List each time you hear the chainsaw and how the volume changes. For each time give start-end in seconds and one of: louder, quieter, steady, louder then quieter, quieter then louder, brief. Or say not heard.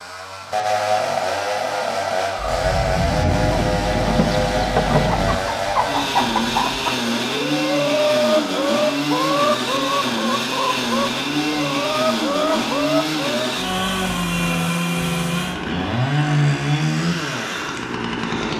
0.0-18.5 steady.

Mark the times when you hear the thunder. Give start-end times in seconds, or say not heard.
2.4-5.4.